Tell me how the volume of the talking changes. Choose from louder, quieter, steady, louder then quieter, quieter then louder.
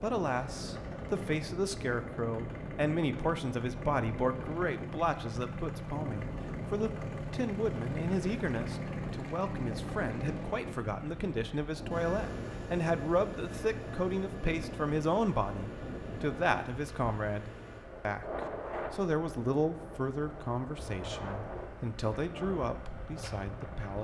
steady.